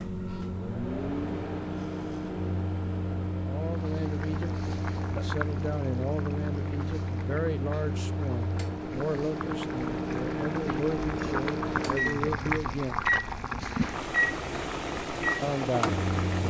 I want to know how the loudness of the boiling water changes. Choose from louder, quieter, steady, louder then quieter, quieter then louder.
quieter then louder.